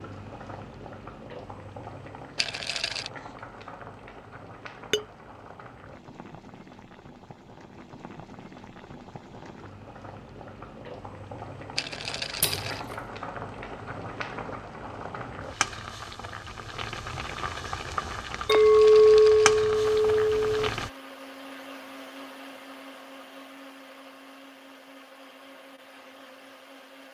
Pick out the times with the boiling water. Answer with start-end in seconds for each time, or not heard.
0.0-20.9.